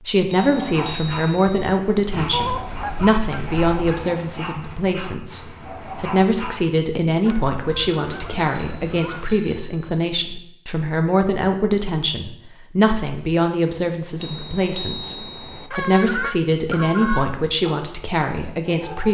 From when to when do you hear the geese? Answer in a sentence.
The geese can be heard from 2.3 to 4.1 s, from 7.2 to 9.3 s and from 15.7 to 17.4 s.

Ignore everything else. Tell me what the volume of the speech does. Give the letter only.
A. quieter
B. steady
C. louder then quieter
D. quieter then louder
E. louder
B.